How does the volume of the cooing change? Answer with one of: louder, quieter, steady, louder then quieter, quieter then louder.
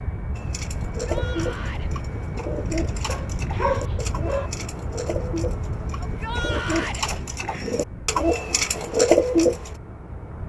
louder.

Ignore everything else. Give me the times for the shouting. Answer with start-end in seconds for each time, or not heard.
1.0-1.9, 6.0-7.0.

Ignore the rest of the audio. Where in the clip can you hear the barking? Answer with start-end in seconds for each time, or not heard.
3.0-4.5.